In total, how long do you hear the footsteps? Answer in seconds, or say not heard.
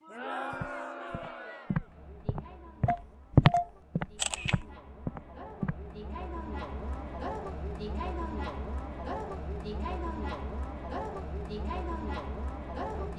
5 s.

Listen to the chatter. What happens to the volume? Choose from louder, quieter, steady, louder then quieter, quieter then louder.
quieter then louder.